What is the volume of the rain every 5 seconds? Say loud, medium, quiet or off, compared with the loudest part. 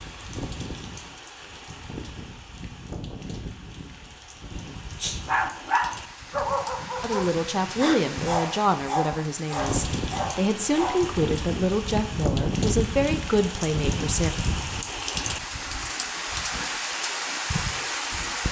medium, medium, loud, loud.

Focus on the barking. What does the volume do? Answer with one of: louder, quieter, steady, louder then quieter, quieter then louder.
quieter.